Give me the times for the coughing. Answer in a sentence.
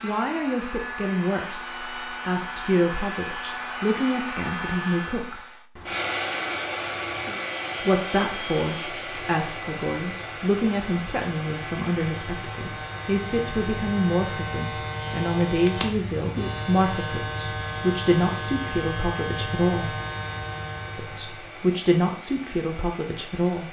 You can't hear the coughing here.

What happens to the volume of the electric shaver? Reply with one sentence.
The loudness of the electric shaver goes up.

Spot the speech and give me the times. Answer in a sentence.
The speech can be heard from 0.0 to 5.4 s, from 7.8 to 19.9 s and from 20.9 to 23.6 s.